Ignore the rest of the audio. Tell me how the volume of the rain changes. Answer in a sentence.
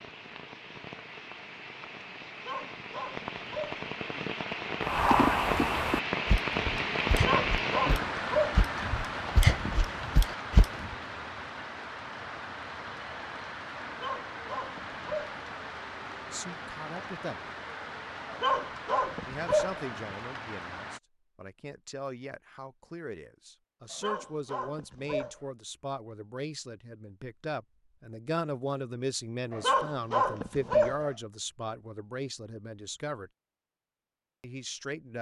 The volume of the rain goes up, then down.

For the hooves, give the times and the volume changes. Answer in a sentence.
You can hear the hooves from 4.8 to 10.9 s, getting quieter then louder.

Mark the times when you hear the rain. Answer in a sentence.
You can hear the rain from 0.0 to 21.0 s.